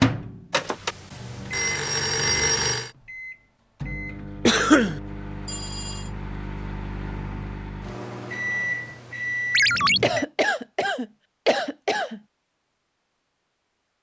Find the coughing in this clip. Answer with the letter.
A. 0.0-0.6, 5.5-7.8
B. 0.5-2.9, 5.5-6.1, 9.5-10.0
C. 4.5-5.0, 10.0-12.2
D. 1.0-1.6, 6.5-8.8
C.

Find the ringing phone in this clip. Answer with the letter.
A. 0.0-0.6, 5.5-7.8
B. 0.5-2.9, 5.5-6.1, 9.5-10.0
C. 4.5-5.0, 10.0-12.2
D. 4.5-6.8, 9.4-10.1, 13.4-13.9
B.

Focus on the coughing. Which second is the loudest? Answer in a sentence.
The volume of the coughing peaks at 5 seconds.